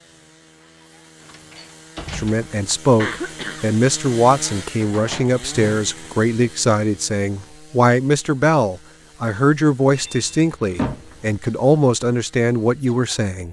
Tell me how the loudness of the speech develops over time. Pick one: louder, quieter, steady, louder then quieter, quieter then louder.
steady.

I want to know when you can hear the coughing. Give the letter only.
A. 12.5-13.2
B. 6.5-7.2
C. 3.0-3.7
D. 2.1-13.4
C.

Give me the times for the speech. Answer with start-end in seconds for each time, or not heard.
2.1-13.4.